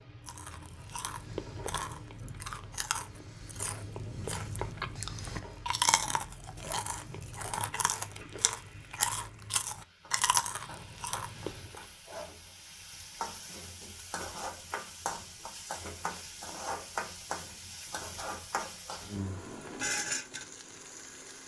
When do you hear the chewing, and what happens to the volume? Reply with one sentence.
You can hear the chewing from 0.2 to 11.8 s, getting louder.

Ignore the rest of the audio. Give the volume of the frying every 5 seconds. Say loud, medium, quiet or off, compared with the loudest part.
quiet, quiet, medium, loud, loud.